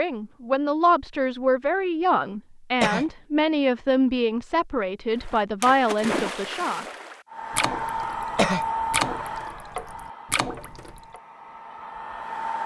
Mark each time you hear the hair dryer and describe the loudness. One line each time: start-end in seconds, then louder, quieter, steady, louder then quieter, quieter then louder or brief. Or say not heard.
7.2-12.6 quieter then louder.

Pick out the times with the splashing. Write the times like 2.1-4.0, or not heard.
5.2-11.2.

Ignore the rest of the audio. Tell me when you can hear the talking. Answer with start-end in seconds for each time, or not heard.
0.0-6.8.